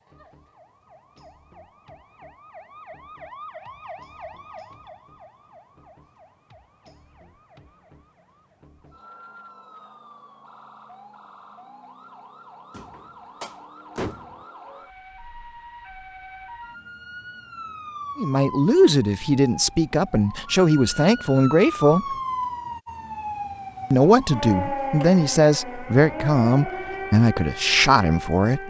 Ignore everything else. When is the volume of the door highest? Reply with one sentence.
The volume of the door peaks at 14 seconds.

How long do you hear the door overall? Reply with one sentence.
The door can be heard for 2 seconds in total.